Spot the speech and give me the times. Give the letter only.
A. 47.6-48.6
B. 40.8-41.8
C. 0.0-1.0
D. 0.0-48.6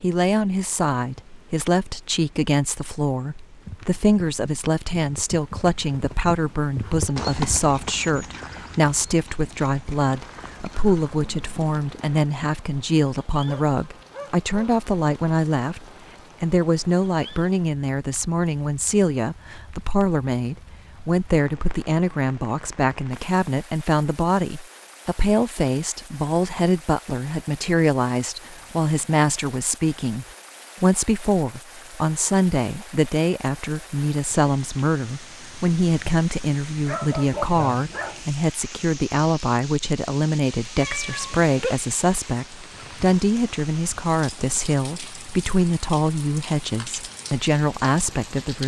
D.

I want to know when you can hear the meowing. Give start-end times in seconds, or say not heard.
40.8-41.8.